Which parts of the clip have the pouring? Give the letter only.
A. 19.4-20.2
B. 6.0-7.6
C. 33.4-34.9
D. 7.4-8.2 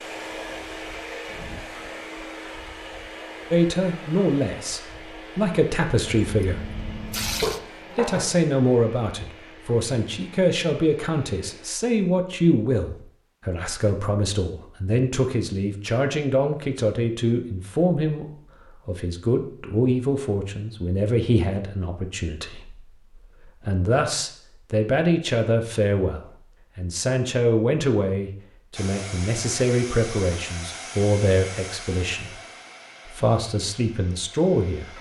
B.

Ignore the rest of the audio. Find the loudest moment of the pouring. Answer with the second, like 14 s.
7 s.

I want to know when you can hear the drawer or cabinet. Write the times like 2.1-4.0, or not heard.
7.4-8.2.